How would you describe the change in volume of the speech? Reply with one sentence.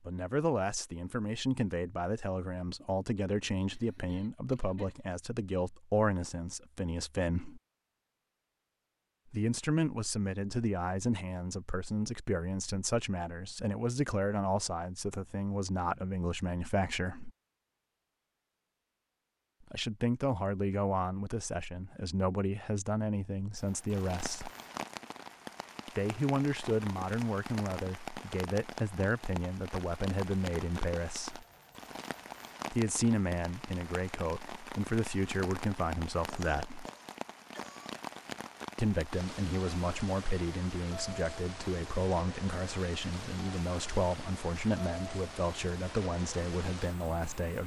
The loudness of the speech stays about the same.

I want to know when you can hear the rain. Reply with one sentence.
The rain can be heard from 23.6 to 47.6 s.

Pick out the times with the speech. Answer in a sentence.
You can hear the speech from 0.1 to 7.6 s, from 9.3 to 17.3 s, from 19.7 to 24.5 s, from 25.9 to 31.4 s, from 32.7 to 36.9 s and from 38.8 to 47.6 s.